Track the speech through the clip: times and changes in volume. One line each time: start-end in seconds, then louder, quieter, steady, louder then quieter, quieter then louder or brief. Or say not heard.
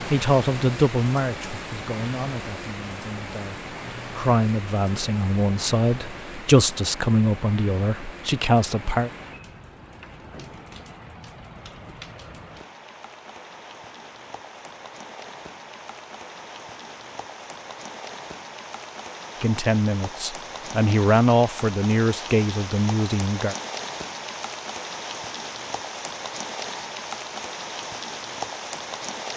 0.1-9.1 quieter then louder
19.4-23.6 louder then quieter.